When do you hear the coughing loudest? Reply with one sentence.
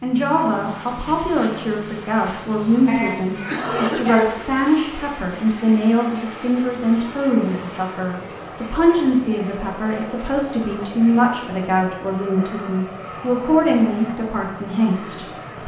The volume of the coughing peaks at 4 seconds.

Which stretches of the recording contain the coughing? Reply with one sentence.
The coughing can be heard from 2.9 to 4.3 s.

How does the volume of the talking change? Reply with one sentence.
The volume of the talking stays about the same.